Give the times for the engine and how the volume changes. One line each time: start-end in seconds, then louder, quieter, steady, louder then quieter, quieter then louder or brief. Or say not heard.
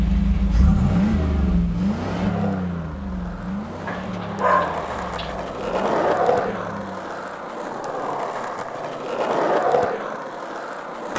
0.0-7.5 quieter.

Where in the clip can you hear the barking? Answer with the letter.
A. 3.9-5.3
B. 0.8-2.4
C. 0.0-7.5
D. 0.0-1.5
A.